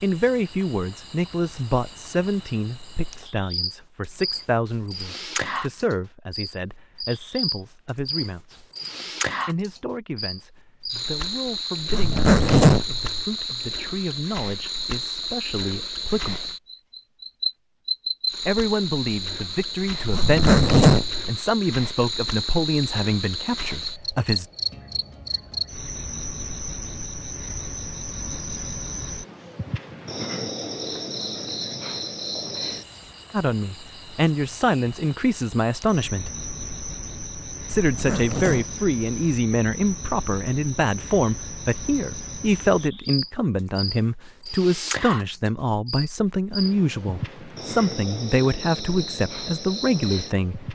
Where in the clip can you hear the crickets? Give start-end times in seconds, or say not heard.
0.0-50.7.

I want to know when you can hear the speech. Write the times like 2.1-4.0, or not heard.
0.0-8.7, 9.4-16.5, 18.4-24.4, 33.3-36.4, 37.6-50.7.